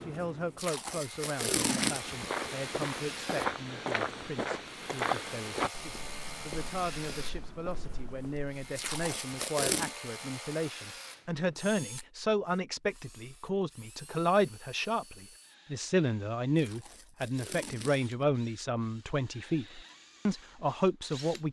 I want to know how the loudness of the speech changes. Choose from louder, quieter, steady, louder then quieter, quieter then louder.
louder.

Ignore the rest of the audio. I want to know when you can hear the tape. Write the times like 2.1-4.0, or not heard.
0.6-2.3, 8.8-9.9, 16.6-18.1.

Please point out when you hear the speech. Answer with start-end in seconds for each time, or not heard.
0.1-21.4.